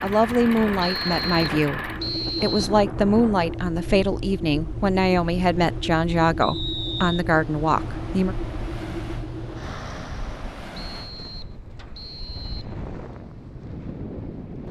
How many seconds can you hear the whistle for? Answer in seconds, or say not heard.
5 s.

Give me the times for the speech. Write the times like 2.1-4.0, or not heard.
0.0-8.3.